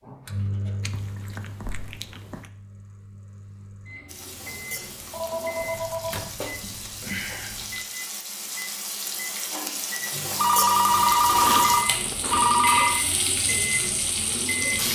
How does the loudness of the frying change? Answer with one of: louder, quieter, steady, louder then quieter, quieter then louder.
louder.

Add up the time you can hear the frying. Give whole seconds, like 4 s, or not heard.
11 s.